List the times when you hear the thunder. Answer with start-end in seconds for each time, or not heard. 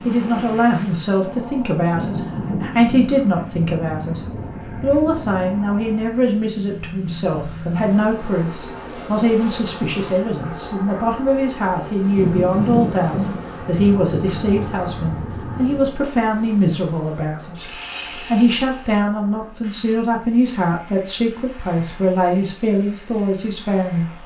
1.9-5.7, 12.2-15.9.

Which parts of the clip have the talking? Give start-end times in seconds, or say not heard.
0.1-4.2, 4.8-24.2.